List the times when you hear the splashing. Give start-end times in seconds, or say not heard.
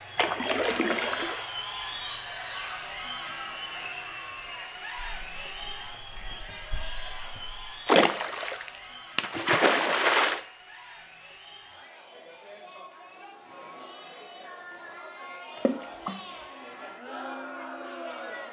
0.1-1.4, 7.8-10.4, 15.6-16.2.